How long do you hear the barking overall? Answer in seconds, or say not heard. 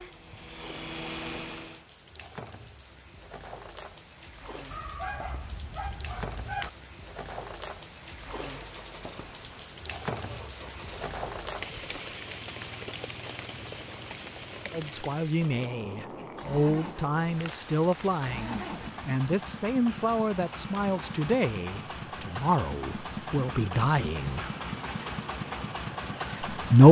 2 s.